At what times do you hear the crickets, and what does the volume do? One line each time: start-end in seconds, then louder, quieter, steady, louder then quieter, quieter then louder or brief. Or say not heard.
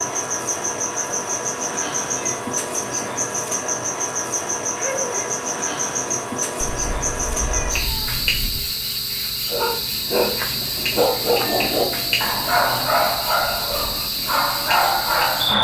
0.0-15.5 steady.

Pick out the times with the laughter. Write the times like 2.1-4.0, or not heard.
4.8-5.3.